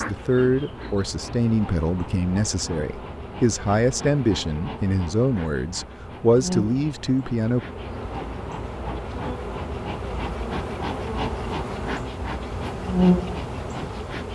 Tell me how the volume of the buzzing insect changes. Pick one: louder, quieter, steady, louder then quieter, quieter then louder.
louder.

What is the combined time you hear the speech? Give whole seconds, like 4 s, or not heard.
8 s.